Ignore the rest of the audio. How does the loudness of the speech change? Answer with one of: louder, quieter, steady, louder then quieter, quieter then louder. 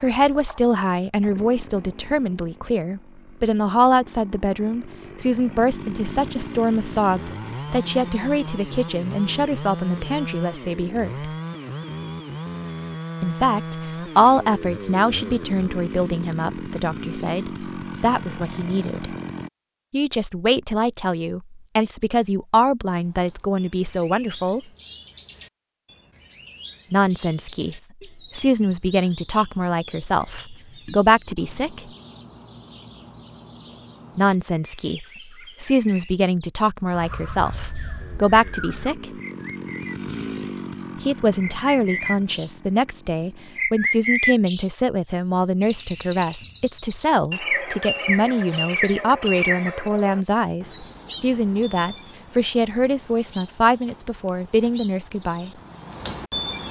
steady.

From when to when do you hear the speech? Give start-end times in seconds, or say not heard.
0.0-11.3, 13.2-19.1, 19.9-24.6, 26.9-31.9, 34.1-39.1, 41.0-55.5.